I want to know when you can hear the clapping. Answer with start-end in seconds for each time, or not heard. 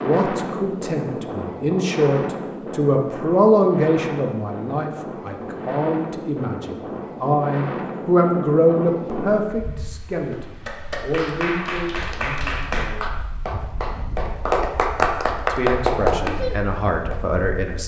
10.3-17.2.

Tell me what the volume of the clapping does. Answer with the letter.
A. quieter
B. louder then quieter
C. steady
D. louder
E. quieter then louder
D.